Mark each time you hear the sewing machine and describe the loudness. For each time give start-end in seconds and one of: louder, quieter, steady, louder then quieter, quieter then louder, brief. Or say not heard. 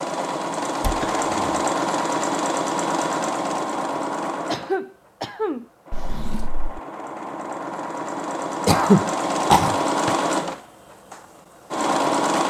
0.0-12.4 quieter then louder.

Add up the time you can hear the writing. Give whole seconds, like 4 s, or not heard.
not heard.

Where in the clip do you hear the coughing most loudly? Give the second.
9 s.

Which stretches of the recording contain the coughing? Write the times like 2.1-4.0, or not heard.
0.9-1.5, 4.5-5.7, 8.7-9.8.